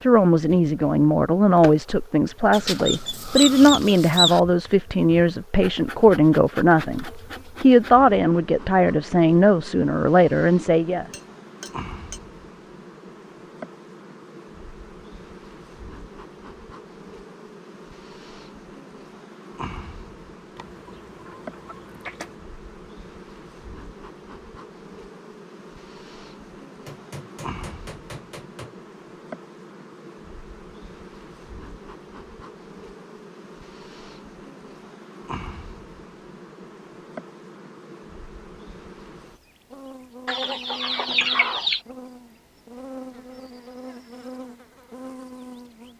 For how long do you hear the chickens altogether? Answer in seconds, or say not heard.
5 s.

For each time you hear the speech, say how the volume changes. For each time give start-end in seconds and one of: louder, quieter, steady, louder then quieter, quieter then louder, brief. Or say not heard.
0.0-11.1 steady.